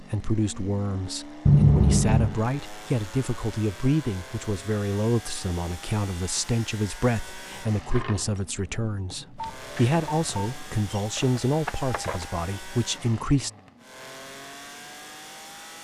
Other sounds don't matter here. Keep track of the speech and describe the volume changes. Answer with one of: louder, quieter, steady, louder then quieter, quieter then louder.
steady.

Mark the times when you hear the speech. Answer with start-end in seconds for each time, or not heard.
0.0-13.5.